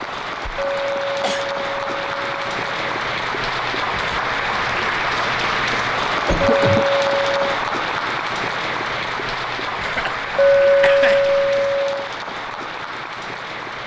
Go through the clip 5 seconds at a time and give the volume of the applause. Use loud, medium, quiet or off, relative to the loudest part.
loud, loud, medium.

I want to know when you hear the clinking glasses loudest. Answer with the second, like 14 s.
11 s.